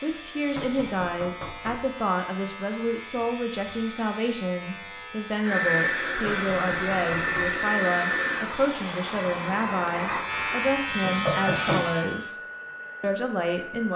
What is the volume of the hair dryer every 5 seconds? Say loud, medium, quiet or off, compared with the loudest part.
off, loud, medium.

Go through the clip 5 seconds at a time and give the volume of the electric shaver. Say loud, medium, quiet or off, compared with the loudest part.
medium, medium, loud.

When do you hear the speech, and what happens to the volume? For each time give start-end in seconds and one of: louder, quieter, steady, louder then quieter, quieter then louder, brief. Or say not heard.
0.0-12.4 steady
13.0-13.9 brief.